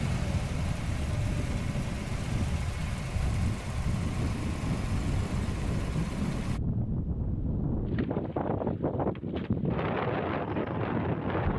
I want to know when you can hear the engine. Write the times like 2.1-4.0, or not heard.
0.0-6.6.